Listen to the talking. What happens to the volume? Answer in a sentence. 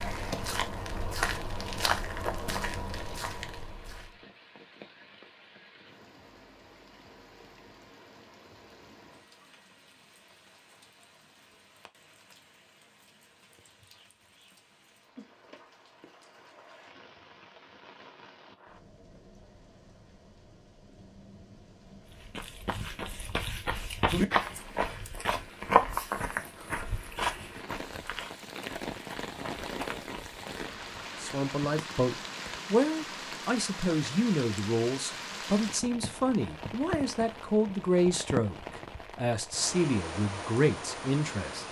The volume of the talking stays about the same.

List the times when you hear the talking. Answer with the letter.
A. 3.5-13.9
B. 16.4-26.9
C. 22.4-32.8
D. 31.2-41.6
D.